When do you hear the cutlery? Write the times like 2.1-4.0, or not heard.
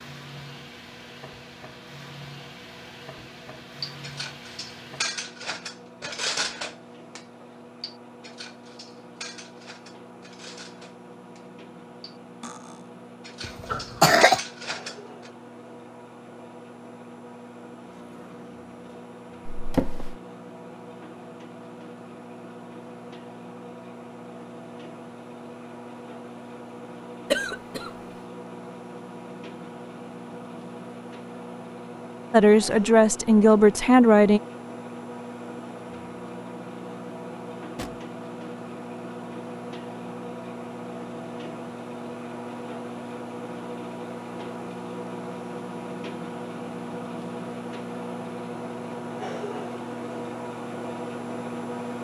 3.8-15.3.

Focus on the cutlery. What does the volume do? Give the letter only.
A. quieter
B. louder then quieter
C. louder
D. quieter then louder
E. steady
D.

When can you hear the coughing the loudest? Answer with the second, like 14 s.
14 s.